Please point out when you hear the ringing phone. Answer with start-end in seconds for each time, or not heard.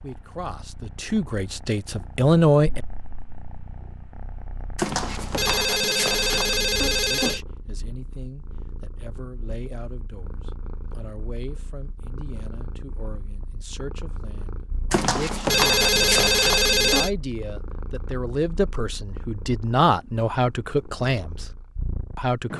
4.8-7.4, 14.9-17.1.